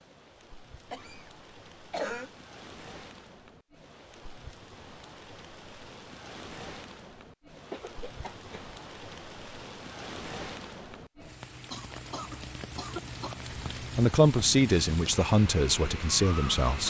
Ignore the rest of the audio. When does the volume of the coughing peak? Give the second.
2 s.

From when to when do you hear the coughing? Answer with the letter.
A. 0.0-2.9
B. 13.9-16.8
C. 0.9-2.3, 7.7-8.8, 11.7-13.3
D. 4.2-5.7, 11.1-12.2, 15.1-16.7
C.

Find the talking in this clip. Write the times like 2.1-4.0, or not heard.
13.9-16.8.